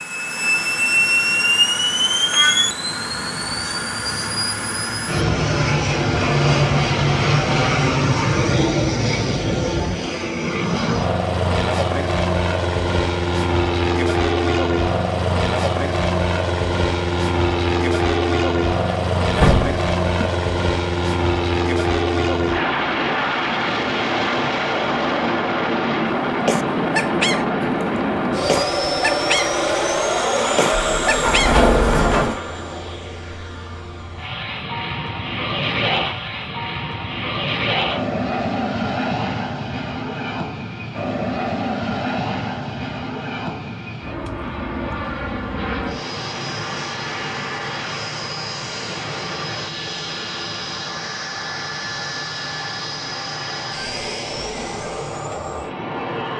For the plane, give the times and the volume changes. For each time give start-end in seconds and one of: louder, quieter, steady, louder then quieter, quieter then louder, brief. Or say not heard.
0.0-56.3 quieter.